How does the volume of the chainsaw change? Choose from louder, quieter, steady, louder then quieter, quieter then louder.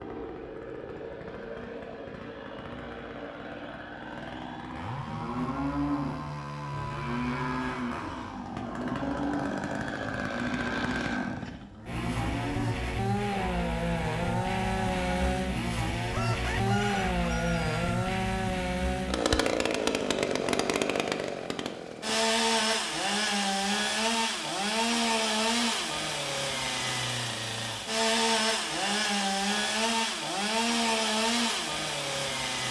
louder.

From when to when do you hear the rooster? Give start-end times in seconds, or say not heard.
16.1-18.0.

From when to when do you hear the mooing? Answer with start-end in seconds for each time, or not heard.
5.0-15.3.